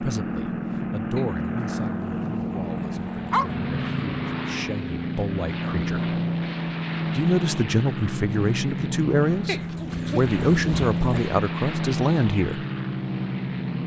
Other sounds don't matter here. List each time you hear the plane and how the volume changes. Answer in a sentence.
The plane can be heard from 0.0 to 13.8 s, at a steady volume.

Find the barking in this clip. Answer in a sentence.
You can hear the barking from 1.1 to 3.5 s and from 9.4 to 11.3 s.